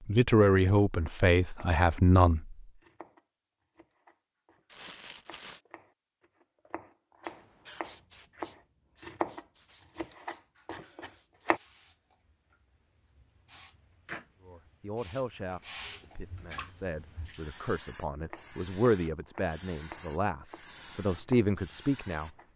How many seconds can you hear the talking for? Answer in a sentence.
You can hear the talking for 10 seconds altogether.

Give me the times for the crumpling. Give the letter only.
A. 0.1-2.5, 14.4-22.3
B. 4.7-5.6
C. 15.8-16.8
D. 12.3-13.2
B.